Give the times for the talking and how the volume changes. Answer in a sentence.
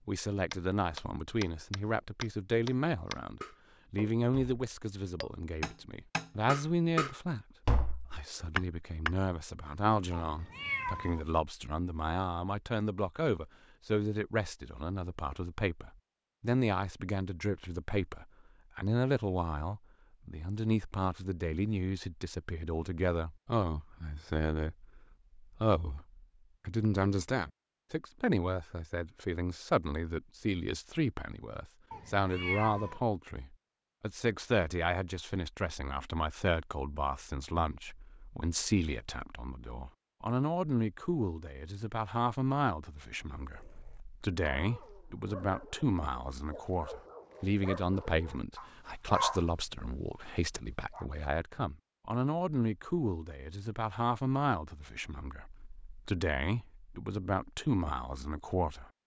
The talking can be heard from 0.1 to 58.9 s, at a steady volume.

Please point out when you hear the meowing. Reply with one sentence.
The meowing can be heard from 10.1 to 11.2 s and from 31.9 to 33.0 s.